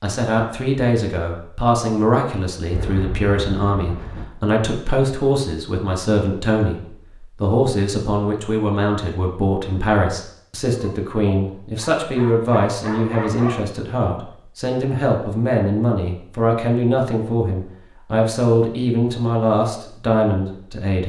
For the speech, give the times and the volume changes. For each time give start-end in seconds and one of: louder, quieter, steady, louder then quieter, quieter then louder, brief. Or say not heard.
0.0-21.0 steady.